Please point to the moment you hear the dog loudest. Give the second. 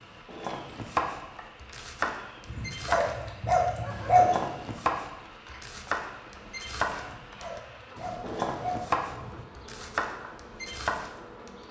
4 s.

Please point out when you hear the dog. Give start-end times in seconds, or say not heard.
2.5-4.2, 7.0-9.7.